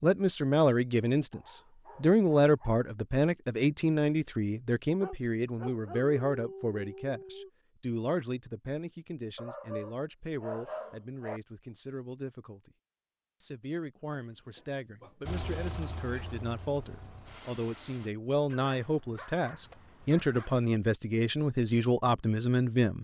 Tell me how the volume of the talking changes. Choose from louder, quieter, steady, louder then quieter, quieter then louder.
quieter then louder.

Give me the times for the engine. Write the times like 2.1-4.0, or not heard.
15.2-18.1.